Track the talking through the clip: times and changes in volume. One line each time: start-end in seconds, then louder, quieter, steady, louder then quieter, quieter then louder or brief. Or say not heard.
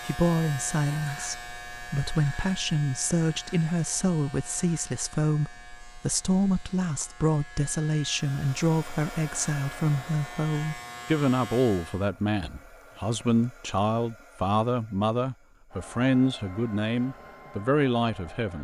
0.1-18.5 steady.